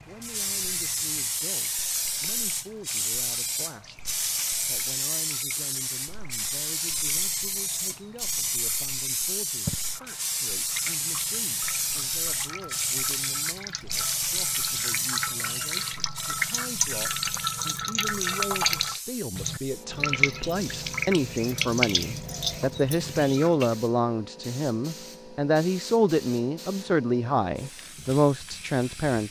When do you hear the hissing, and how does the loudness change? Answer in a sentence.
The hissing can be heard from 0.1 to 29.2 s, getting quieter.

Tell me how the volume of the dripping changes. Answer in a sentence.
The loudness of the dripping goes up.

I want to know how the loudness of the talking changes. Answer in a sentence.
The loudness of the talking goes up.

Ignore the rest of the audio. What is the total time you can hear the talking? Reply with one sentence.
The talking can be heard for 29 seconds in total.